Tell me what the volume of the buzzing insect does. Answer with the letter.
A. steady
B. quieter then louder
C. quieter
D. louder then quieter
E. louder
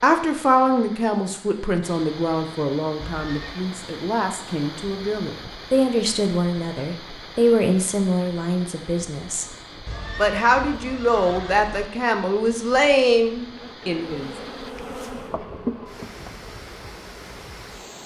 D.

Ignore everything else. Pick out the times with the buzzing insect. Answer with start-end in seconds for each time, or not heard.
13.4-17.9.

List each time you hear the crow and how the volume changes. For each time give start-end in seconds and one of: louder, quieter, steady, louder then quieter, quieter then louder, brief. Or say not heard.
not heard.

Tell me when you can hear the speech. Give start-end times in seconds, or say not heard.
0.0-9.4, 10.2-14.3.